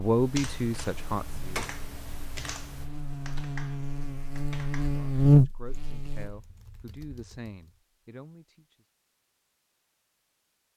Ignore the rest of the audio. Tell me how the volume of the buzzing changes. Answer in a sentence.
The loudness of the buzzing goes up.